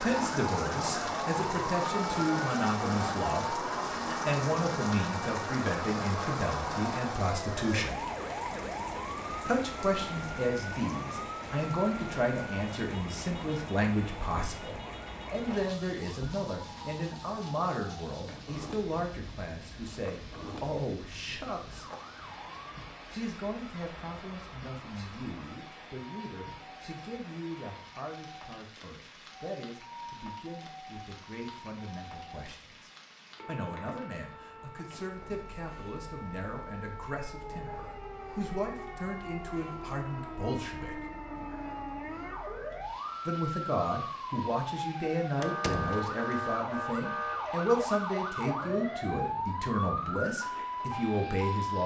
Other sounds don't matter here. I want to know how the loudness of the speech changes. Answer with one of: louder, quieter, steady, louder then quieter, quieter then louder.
quieter then louder.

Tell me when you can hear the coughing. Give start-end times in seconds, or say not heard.
not heard.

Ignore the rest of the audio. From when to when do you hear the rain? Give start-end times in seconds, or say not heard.
0.0-51.8.